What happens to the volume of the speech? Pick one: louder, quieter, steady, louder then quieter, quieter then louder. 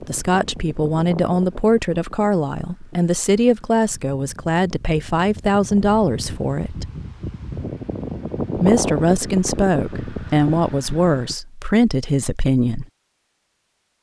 steady.